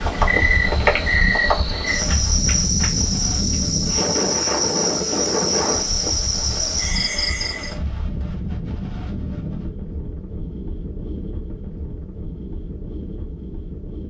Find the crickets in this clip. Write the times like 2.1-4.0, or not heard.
0.0-7.8.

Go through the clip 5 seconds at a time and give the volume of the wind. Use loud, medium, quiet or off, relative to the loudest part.
loud, loud, medium.